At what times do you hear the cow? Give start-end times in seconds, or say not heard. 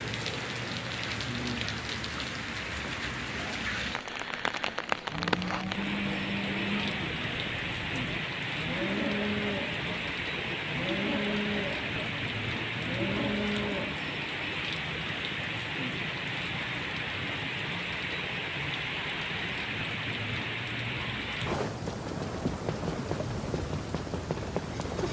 5.0-14.0.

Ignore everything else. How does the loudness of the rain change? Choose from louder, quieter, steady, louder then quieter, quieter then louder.
steady.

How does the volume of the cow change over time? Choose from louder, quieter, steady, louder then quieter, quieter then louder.
quieter then louder.